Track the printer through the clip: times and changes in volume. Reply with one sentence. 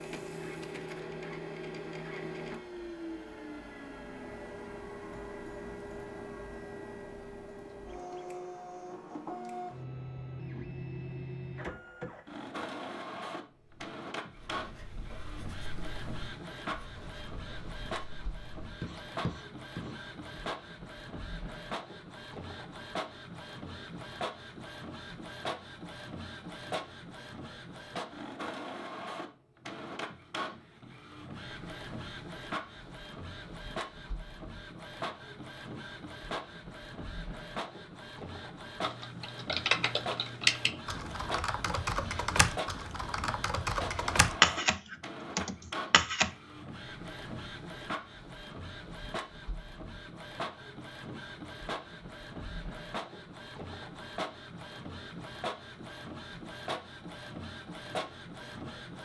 The printer can be heard from 0.0 to 59.0 s, at a steady volume.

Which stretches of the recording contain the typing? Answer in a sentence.
You can hear the typing from 38.8 to 46.3 s.